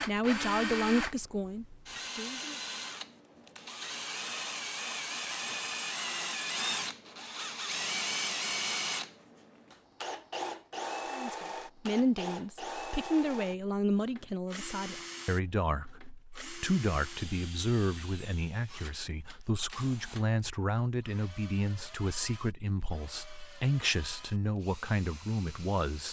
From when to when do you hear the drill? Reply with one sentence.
You can hear the drill from 0.0 to 26.0 s.